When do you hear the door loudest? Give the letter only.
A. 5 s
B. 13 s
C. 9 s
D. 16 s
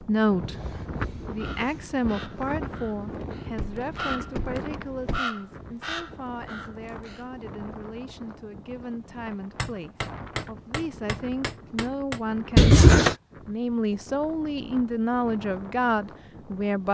B.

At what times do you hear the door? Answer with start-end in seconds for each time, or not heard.
3.5-5.2, 12.6-13.2.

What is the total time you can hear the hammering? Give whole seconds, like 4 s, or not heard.
3 s.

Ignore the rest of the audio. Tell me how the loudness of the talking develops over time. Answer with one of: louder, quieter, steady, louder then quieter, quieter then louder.
quieter then louder.